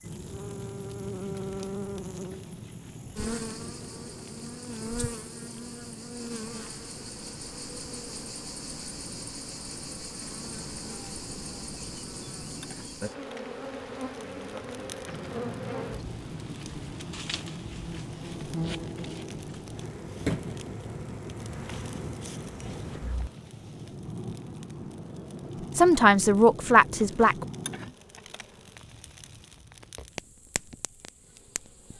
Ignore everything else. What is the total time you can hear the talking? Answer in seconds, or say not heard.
2 s.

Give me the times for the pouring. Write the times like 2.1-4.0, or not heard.
not heard.